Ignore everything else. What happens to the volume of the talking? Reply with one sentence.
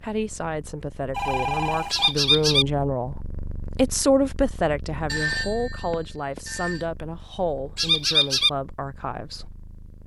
The volume of the talking goes up, then down.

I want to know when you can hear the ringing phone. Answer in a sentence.
You can hear the ringing phone from 1.1 to 2.1 s and from 5.0 to 6.8 s.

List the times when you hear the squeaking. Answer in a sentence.
The squeaking can be heard from 1.9 to 2.6 s and from 7.8 to 8.5 s.